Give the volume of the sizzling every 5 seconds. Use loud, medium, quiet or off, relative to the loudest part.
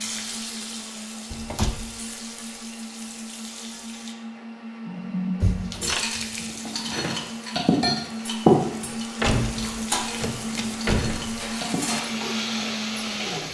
medium, loud, loud.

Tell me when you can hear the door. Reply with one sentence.
You can hear the door from 1.3 to 1.8 s, from 5.4 to 6.0 s and from 9.2 to 11.6 s.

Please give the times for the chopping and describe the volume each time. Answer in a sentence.
You can't hear the chopping here.